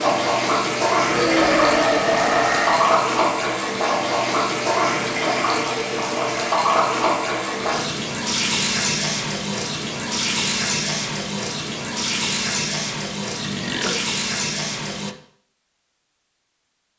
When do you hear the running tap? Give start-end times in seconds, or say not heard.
0.0-15.2.